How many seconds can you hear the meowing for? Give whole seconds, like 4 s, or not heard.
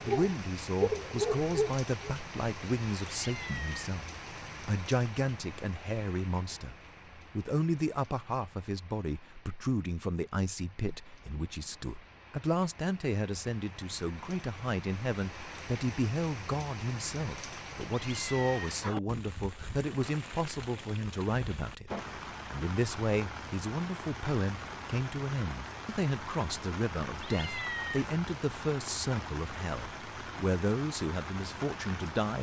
3 s.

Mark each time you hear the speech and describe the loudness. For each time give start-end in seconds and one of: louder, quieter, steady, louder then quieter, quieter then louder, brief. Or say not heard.
0.0-4.0 steady
4.7-32.3 steady.